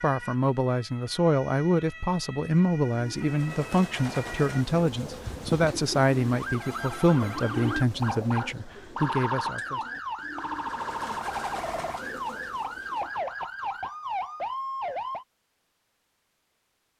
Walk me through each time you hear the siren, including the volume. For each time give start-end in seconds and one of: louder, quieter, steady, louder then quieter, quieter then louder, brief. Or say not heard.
0.0-15.2 louder.